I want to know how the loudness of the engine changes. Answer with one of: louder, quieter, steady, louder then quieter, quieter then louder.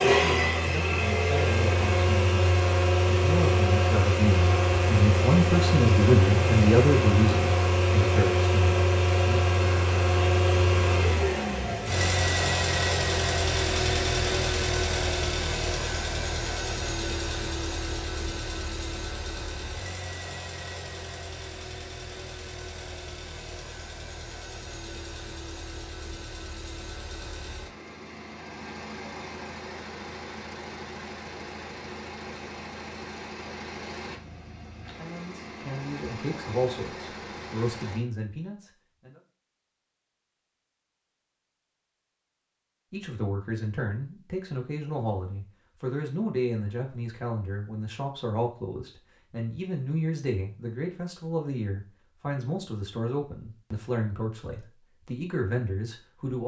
quieter.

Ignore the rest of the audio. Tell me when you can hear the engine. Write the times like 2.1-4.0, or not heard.
0.0-38.0.